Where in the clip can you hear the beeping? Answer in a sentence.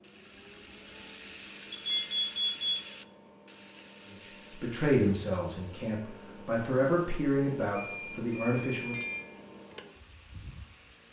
You can hear the beeping from 1.7 to 2.9 s and from 7.8 to 9.2 s.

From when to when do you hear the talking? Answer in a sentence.
The talking can be heard from 4.1 to 8.9 s.